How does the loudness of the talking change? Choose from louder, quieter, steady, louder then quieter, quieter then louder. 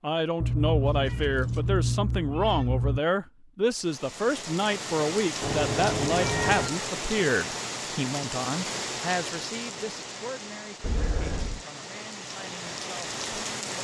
quieter.